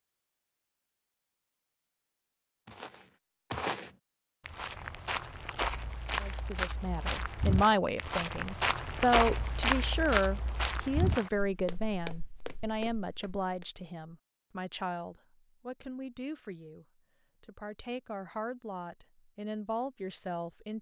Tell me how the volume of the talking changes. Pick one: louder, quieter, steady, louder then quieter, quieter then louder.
quieter.